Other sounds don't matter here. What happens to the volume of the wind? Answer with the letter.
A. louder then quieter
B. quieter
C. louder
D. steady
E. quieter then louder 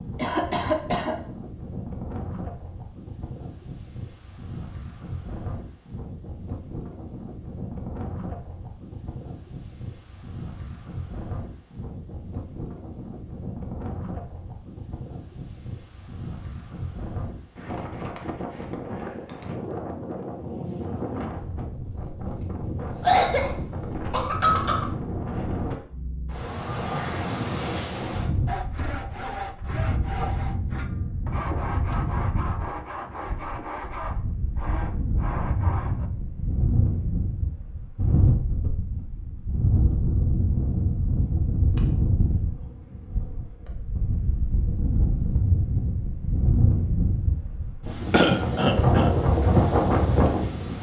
C.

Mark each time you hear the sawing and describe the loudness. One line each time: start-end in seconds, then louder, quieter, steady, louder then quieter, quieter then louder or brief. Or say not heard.
28.4-36.1 steady.